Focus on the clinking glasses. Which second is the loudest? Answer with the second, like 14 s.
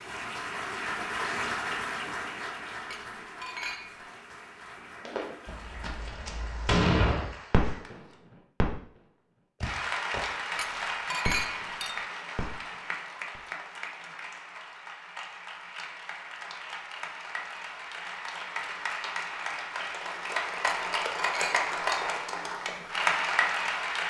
11 s.